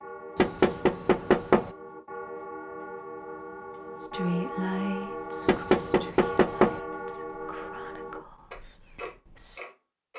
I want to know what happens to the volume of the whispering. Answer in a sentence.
The volume of the whispering goes down.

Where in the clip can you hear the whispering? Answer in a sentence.
You can hear the whispering from 4.0 to 9.7 s.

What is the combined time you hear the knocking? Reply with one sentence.
You can hear the knocking for 3 seconds altogether.